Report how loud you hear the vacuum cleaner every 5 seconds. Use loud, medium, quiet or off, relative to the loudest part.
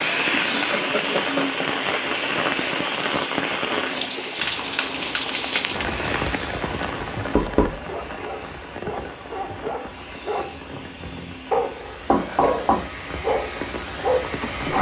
loud, medium, medium.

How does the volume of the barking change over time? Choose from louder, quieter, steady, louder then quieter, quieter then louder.
louder.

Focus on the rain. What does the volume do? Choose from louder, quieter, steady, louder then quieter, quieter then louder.
quieter.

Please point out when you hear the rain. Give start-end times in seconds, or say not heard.
0.0-14.7.